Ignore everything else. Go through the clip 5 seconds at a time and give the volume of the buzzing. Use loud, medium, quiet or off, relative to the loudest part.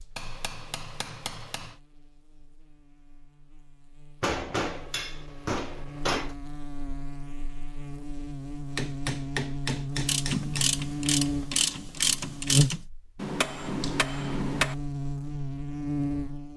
quiet, medium, loud, loud.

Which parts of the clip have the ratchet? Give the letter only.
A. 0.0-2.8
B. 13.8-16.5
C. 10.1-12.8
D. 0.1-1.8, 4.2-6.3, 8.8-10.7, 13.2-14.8
C.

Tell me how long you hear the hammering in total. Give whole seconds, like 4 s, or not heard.
7 s.